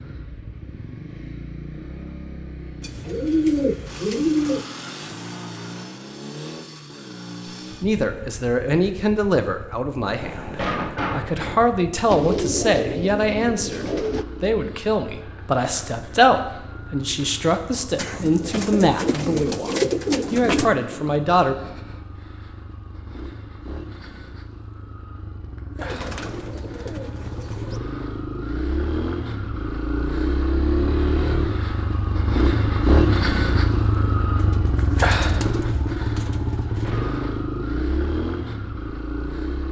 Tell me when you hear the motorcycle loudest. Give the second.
33 s.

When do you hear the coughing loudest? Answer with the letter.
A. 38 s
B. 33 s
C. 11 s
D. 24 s
C.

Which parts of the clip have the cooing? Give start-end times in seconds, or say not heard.
2.8-4.7, 12.1-14.2, 17.9-20.7, 25.8-27.8, 34.4-37.0.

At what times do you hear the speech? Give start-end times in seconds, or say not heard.
7.8-21.6.